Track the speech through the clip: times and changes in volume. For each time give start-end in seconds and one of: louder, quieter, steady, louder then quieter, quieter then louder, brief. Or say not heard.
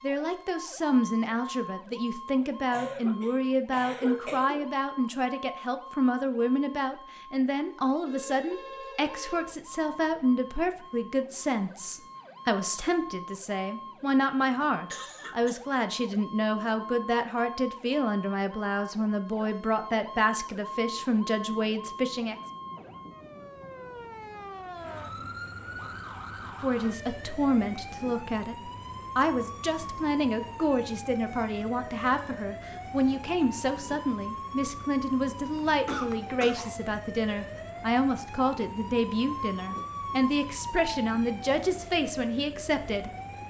0.0-22.4 steady
26.6-43.1 steady.